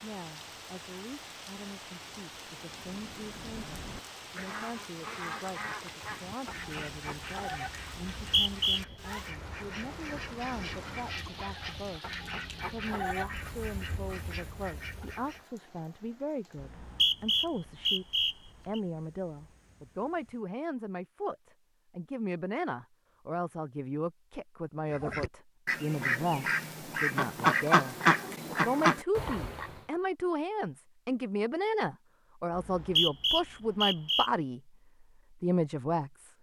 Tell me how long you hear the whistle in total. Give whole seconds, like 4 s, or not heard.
5 s.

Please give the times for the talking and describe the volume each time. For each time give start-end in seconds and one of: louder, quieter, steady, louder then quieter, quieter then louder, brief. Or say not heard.
0.0-36.3 louder.